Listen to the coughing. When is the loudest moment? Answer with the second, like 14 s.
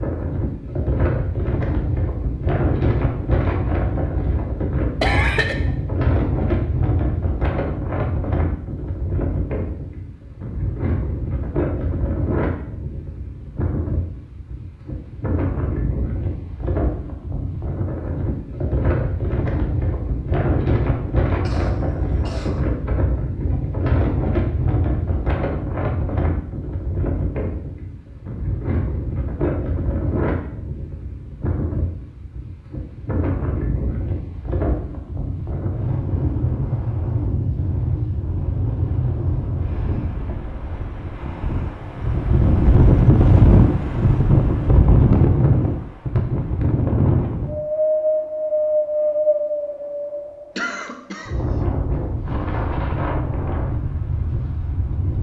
5 s.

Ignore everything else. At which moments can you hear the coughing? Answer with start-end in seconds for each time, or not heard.
5.0-5.6, 21.4-22.6, 50.5-51.4.